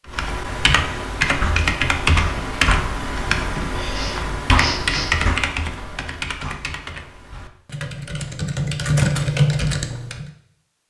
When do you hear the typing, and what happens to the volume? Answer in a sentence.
The typing can be heard from 0.1 to 10.2 s, getting quieter then louder.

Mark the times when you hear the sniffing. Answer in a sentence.
The sniffing can be heard from 3.9 to 5.2 s.